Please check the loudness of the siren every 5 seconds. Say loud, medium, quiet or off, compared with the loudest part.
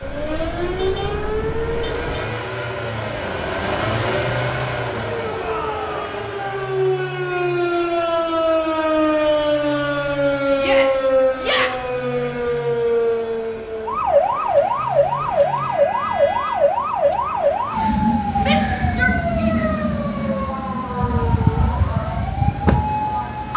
medium, loud, loud, loud, loud.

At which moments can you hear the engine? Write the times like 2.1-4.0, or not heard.
0.0-23.5.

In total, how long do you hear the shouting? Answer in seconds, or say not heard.
3 s.